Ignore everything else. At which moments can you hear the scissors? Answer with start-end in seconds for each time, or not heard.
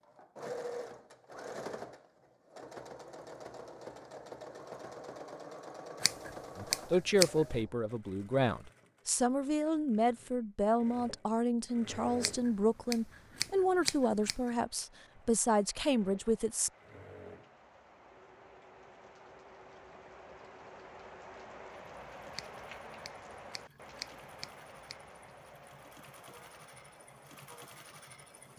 6.0-7.5, 12.2-14.5, 22.4-24.9.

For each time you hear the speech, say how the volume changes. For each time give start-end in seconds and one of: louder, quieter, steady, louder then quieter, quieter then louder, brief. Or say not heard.
6.5-16.7 steady.